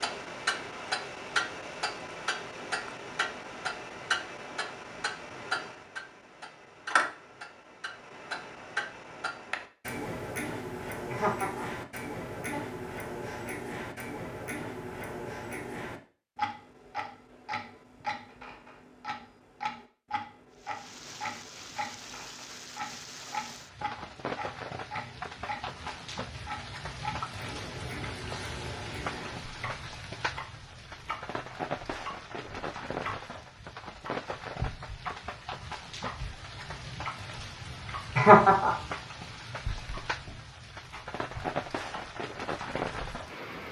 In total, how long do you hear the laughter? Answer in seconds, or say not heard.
2 s.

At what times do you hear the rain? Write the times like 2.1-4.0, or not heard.
20.5-43.6.